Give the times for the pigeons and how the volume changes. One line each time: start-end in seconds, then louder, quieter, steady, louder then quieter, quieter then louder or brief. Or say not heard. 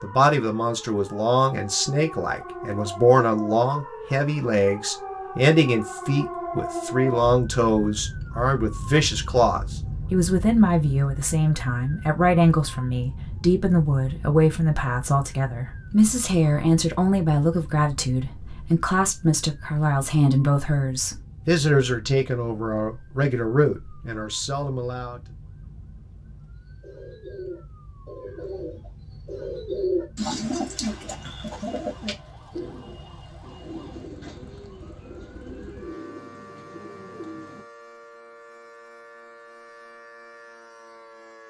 26.8-37.6 louder then quieter.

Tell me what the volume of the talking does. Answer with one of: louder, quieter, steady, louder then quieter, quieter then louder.
steady.